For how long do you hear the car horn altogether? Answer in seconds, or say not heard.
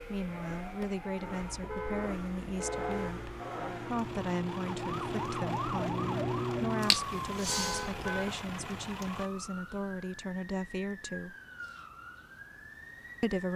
3 s.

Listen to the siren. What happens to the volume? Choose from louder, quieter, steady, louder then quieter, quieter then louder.
louder then quieter.